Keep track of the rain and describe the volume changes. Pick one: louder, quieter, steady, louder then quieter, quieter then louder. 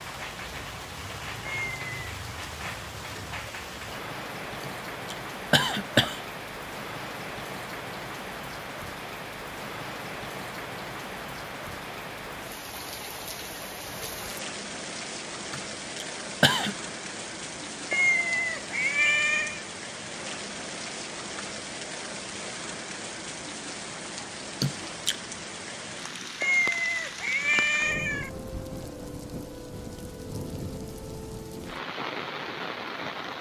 steady.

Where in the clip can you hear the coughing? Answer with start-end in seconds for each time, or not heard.
4.6-6.2, 15.5-16.8, 24.6-25.2.